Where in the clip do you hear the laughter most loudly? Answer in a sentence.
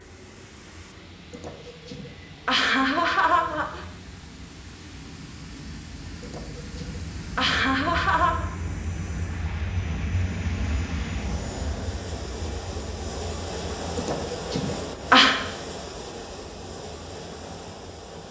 The loudest moment of the laughter is at 15 seconds.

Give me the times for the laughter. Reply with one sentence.
The laughter can be heard from 1.3 to 3.9 s, from 6.2 to 8.4 s and from 13.9 to 15.3 s.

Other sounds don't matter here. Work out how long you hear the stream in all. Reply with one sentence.
You can hear the stream for 18 seconds altogether.